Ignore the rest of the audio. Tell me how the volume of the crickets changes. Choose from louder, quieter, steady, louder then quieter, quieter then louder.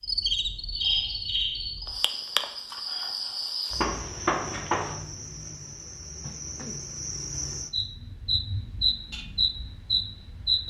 quieter then louder.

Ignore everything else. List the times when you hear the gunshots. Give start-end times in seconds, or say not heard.
3.8-5.0.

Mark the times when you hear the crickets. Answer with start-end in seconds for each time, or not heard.
0.0-10.6.